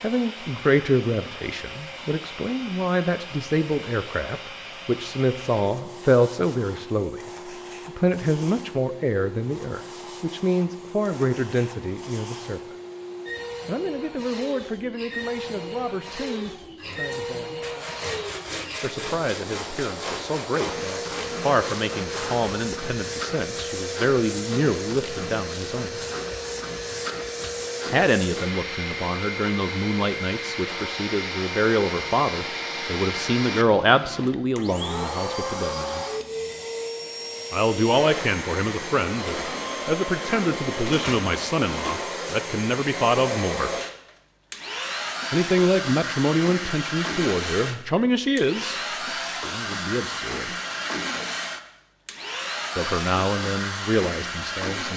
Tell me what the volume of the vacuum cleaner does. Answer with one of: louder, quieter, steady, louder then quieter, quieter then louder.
louder.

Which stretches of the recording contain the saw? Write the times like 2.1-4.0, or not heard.
16.8-22.5.